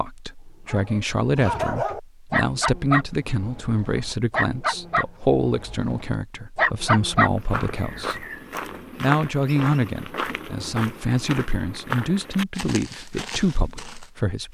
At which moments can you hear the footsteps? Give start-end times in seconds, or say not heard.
7.0-14.1.